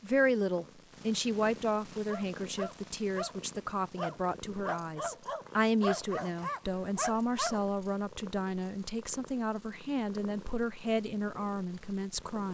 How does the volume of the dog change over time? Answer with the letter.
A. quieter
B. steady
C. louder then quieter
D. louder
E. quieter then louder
B.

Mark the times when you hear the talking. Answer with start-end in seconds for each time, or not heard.
0.0-12.5.